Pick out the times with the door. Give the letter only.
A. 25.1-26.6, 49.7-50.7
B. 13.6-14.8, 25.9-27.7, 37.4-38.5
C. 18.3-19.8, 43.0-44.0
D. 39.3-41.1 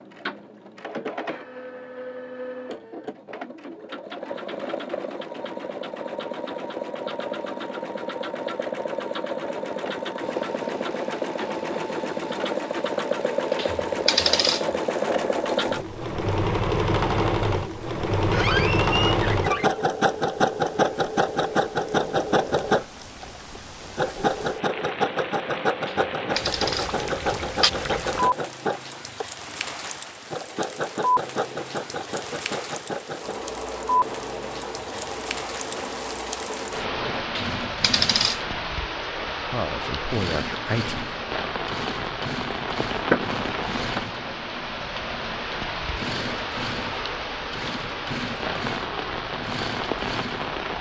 C.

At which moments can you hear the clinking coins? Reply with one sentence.
The clinking coins can be heard from 13.6 to 14.8 s, from 25.9 to 27.7 s and from 37.4 to 38.5 s.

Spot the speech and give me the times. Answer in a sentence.
The speech can be heard from 39.3 to 41.1 s.